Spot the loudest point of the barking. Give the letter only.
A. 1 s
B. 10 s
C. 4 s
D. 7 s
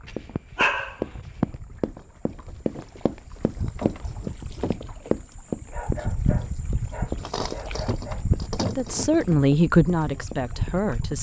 A.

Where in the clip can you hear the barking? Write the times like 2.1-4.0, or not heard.
0.1-1.4, 5.7-8.3.